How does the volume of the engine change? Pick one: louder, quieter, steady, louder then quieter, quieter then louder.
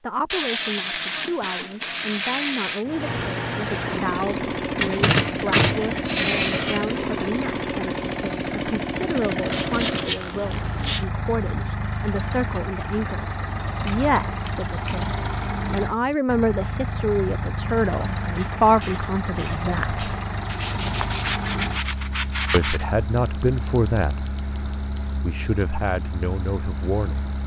quieter.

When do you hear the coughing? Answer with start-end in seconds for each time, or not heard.
not heard.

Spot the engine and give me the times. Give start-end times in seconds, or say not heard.
2.8-27.4.